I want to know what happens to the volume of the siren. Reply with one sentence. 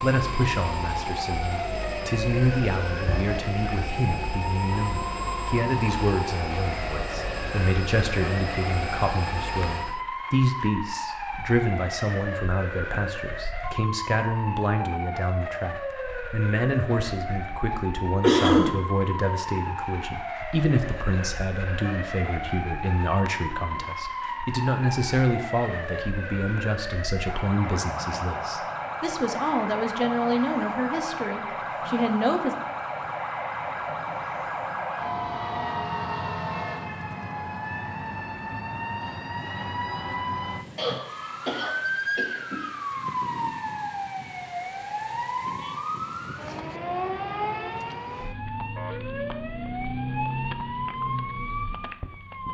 The loudness of the siren stays about the same.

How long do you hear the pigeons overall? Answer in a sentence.
You can't hear the pigeons here.